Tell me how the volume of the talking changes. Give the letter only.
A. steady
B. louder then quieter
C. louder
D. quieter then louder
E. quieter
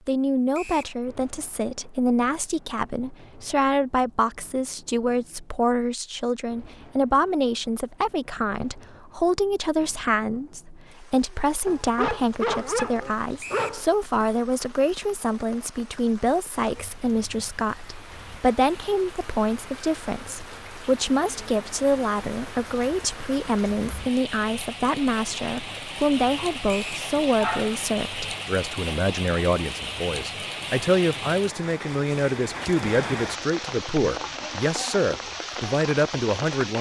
A.